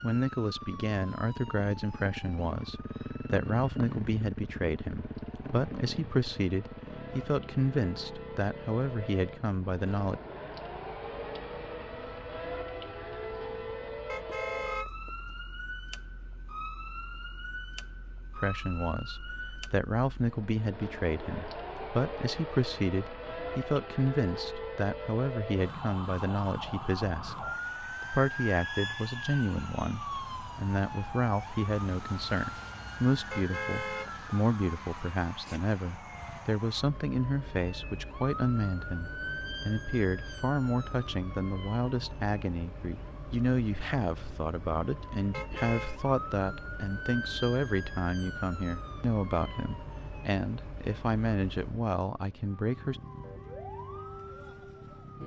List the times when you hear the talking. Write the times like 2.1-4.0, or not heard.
0.0-10.2, 18.4-53.0.